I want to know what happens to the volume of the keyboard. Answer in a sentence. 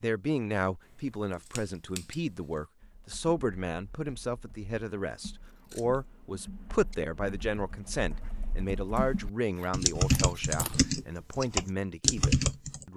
The volume of the keyboard goes up.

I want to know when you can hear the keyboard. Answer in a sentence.
You can hear the keyboard from 2.8 to 12.8 s.